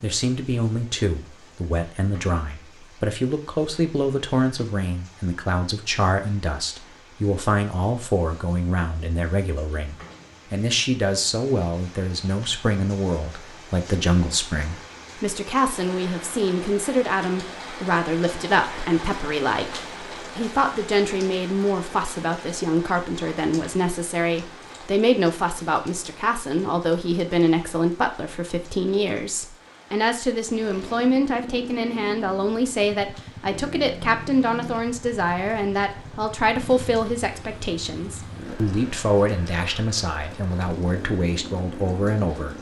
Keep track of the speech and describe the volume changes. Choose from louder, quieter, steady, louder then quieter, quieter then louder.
steady.